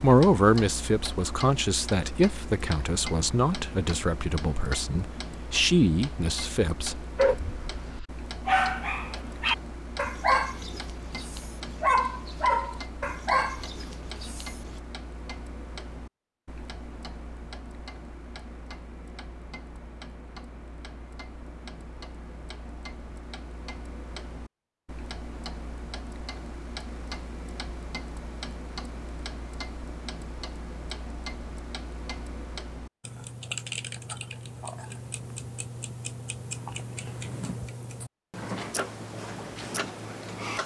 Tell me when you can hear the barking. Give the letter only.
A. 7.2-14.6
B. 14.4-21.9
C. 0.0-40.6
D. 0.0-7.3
A.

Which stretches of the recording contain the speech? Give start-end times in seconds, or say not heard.
0.0-7.3.